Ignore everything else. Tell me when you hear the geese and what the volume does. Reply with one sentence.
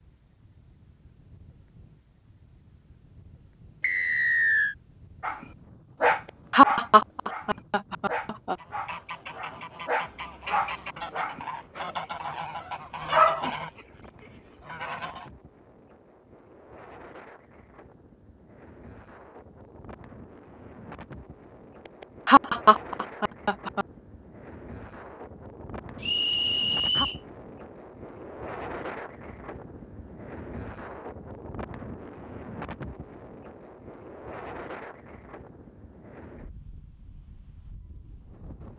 The geese can be heard from 8.6 to 15.3 s, getting louder then quieter.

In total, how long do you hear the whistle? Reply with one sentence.
You can hear the whistle for 2 seconds altogether.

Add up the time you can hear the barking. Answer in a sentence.
The barking can be heard for 8 seconds in total.